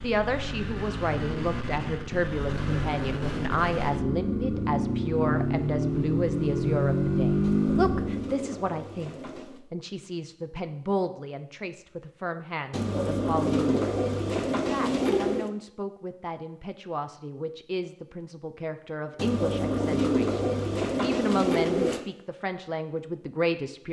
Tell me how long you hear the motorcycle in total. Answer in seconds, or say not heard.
8 s.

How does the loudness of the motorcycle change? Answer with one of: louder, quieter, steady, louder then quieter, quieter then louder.
louder.